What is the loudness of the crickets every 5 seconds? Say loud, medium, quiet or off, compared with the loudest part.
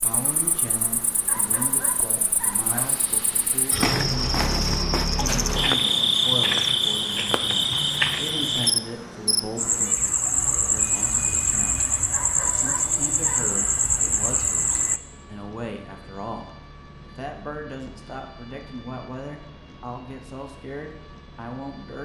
medium, loud, loud, off, off.